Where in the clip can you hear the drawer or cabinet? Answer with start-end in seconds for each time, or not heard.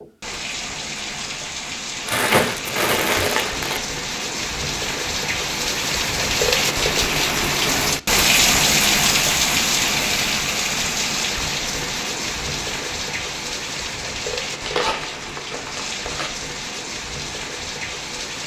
not heard.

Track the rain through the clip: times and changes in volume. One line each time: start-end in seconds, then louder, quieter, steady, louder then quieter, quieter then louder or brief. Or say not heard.
0.0-18.4 louder then quieter.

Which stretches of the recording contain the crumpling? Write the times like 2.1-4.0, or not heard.
2.0-3.8, 14.6-16.4.